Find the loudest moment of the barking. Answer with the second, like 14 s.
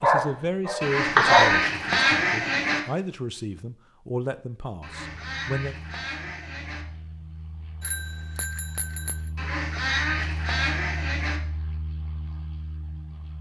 1 s.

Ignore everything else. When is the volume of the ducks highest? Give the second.
1 s.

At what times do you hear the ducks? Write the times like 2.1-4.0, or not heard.
0.8-2.8, 4.8-6.8, 9.3-11.4.